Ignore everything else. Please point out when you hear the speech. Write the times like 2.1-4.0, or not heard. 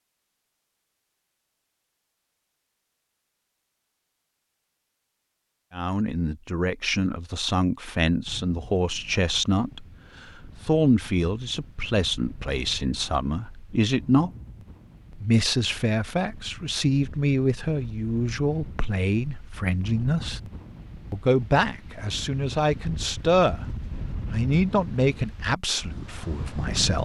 5.7-9.8, 10.6-14.3, 15.1-20.4, 21.1-23.6, 24.2-27.0.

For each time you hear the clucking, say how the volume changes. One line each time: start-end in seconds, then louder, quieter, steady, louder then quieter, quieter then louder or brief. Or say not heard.
not heard.